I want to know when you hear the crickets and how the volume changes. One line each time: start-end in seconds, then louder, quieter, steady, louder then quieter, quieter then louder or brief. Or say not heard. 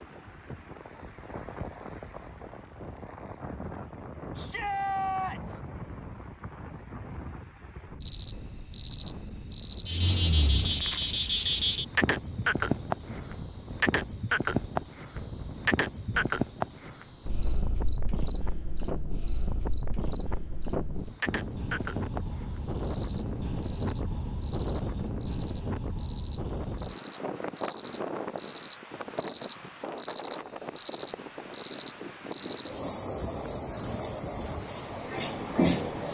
8.0-36.1 quieter then louder.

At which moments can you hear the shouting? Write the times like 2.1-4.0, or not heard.
4.3-5.6.